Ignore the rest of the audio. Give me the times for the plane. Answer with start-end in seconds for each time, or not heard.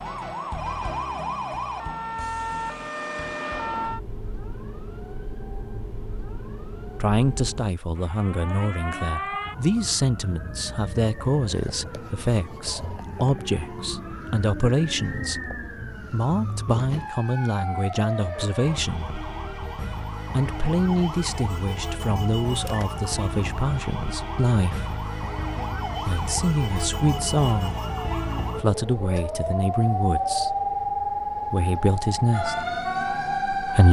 not heard.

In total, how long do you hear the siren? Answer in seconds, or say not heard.
34 s.